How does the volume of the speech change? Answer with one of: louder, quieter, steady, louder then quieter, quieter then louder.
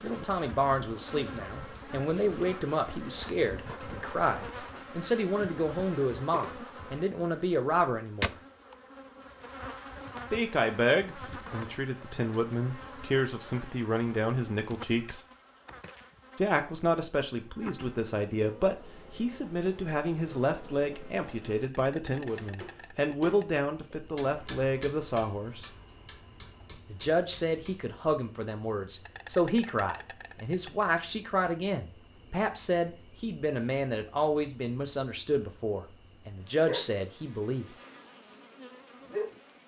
steady.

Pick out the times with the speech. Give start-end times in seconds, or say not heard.
0.0-8.3, 10.3-15.2, 16.4-25.7, 26.9-37.6.